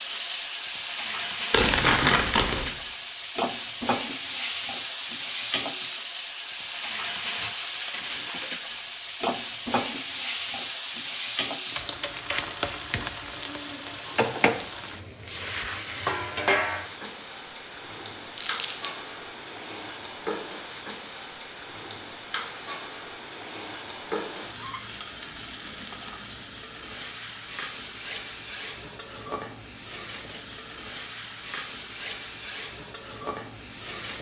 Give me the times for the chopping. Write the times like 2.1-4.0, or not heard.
not heard.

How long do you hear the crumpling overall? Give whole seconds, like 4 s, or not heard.
2 s.